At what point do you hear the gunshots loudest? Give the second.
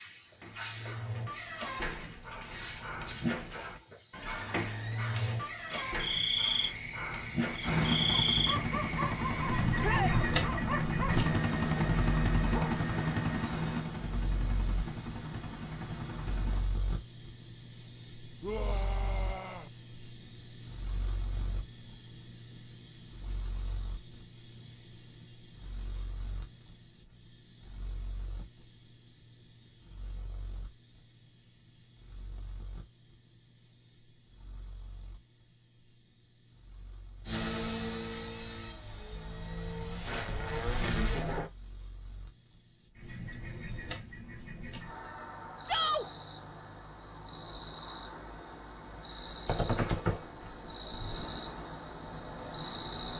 50 s.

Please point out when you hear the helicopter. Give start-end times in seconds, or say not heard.
7.6-16.6, 37.2-41.5.